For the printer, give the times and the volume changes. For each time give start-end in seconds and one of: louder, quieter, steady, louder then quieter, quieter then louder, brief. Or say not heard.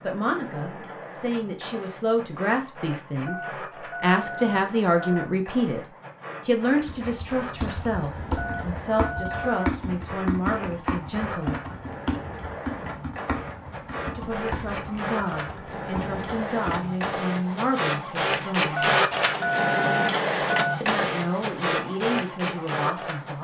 0.0-23.3 louder.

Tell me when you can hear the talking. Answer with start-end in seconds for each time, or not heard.
0.0-5.8, 6.5-11.8, 14.1-18.9, 20.8-23.3.